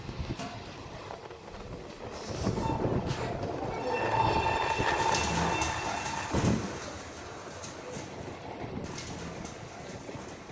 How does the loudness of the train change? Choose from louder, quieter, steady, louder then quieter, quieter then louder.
louder then quieter.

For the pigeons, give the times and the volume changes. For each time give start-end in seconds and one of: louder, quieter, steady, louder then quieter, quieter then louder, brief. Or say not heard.
0.1-10.4 louder then quieter.